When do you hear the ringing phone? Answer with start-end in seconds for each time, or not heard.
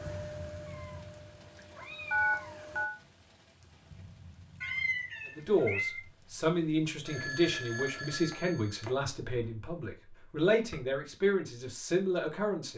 2.1-3.0, 7.0-8.9.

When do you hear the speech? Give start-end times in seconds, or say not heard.
5.3-12.7.